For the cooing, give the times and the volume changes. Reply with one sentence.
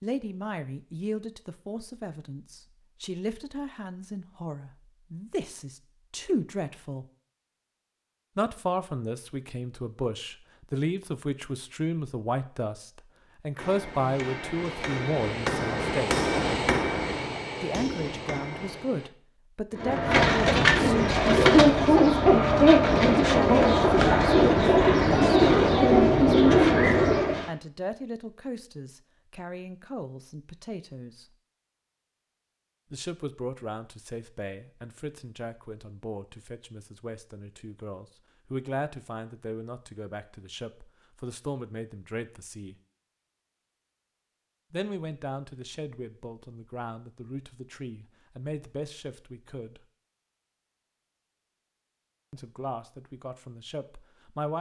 You can hear the cooing from 19.8 to 27.5 s, at a steady volume.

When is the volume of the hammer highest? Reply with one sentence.
The volume of the hammer peaks at 16 seconds.